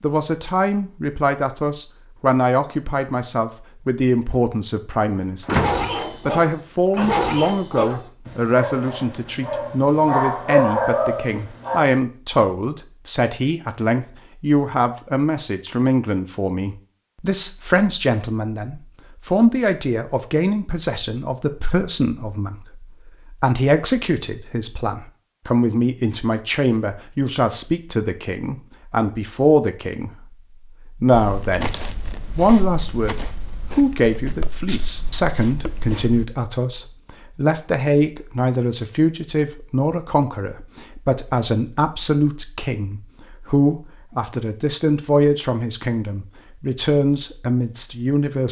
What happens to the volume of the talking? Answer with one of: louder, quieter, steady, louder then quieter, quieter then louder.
steady.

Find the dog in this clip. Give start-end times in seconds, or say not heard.
5.5-11.9.